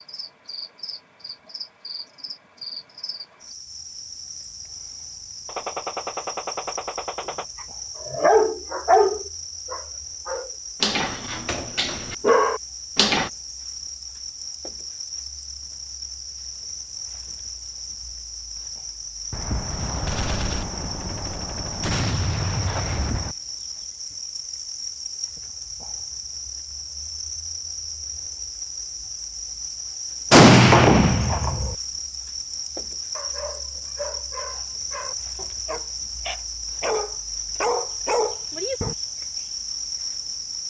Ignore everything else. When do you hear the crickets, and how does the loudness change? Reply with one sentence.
The crickets can be heard from 0.0 to 40.6 s, getting louder.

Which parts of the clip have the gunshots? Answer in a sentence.
The gunshots can be heard from 5.5 to 7.5 s, from 19.3 to 23.4 s and from 30.3 to 31.8 s.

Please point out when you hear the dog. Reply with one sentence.
You can hear the dog from 8.0 to 13.3 s and from 33.1 to 39.0 s.